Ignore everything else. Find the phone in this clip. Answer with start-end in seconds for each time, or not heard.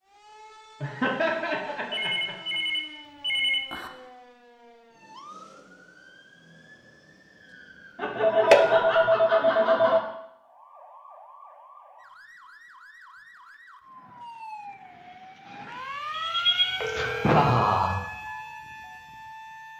1.9-3.9, 8.2-10.0, 16.8-17.6.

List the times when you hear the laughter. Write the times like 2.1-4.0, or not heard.
0.8-2.5, 8.0-10.0, 16.1-17.9.